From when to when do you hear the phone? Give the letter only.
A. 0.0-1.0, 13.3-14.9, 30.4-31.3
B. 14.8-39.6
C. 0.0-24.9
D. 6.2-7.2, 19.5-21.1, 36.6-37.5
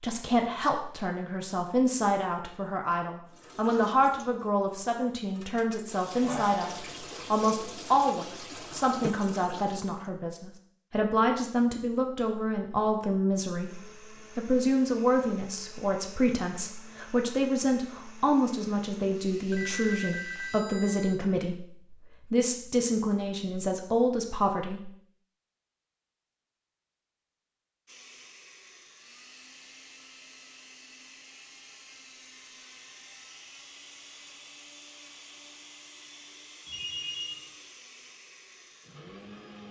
D.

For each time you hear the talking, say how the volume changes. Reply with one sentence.
You can hear the talking from 0.0 to 24.9 s, at a steady volume.